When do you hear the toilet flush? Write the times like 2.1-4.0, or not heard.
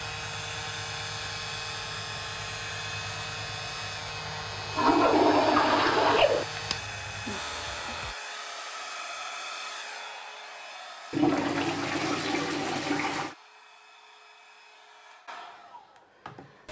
4.7-6.5, 11.1-13.3.